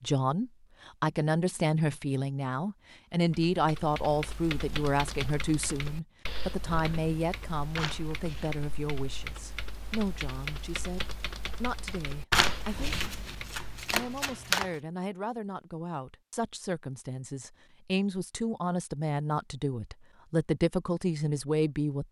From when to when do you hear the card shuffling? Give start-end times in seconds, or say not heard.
7.8-8.6, 12.3-14.7.